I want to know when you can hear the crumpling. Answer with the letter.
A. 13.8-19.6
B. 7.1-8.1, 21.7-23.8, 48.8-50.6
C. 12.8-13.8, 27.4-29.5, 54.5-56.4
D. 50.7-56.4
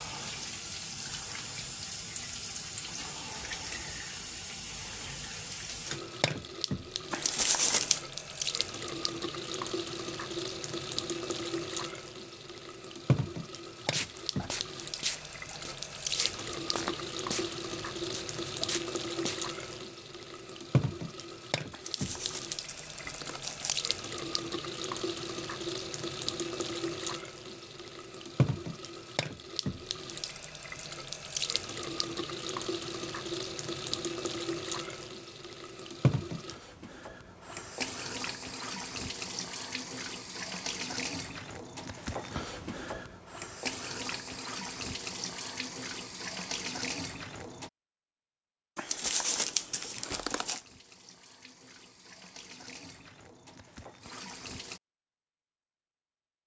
B.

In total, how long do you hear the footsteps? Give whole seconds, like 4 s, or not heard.
6 s.